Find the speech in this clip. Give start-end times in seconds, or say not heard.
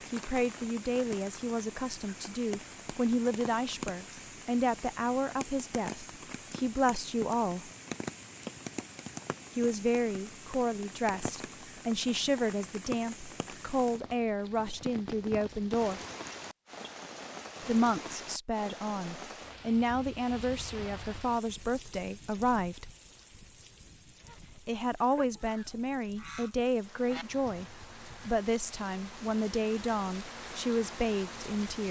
0.1-7.7, 9.6-16.0, 17.6-22.9, 24.6-31.8.